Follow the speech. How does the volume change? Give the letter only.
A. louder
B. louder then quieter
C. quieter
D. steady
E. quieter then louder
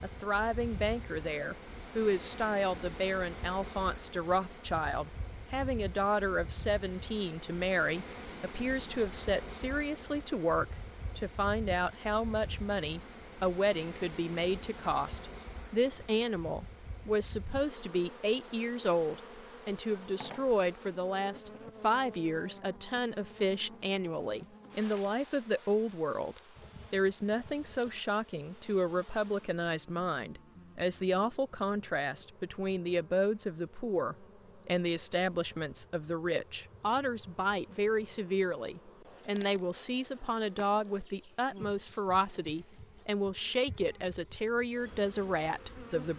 D.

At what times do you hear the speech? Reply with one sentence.
The speech can be heard from 0.0 to 46.1 s.